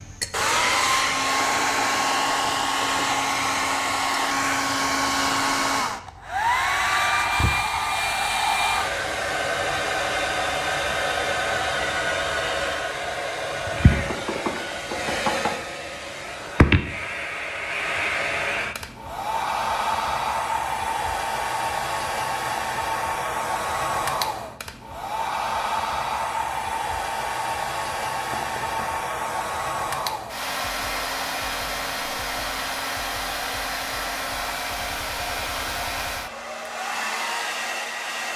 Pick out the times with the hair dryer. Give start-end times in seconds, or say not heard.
0.0-38.3.